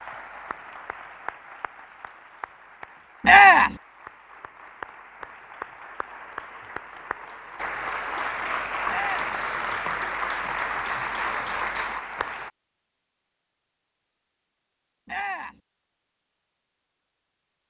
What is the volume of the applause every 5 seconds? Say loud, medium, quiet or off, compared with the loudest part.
quiet, loud, loud, off.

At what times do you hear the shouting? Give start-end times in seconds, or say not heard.
3.2-3.8, 8.8-9.2, 15.1-15.6.